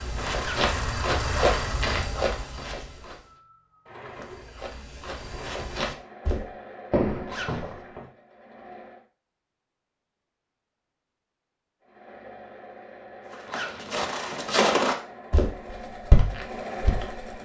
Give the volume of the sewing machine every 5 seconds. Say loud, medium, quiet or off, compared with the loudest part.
loud, medium, medium, loud.